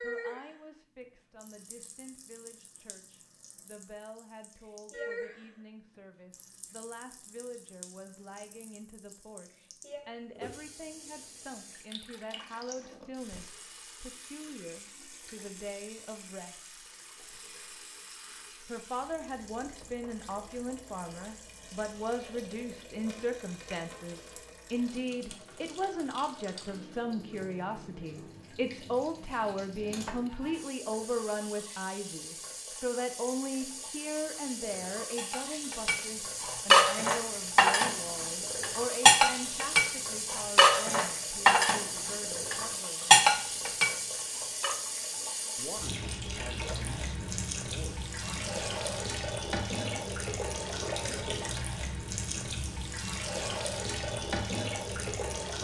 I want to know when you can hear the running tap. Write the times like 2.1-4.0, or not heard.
0.0-55.6.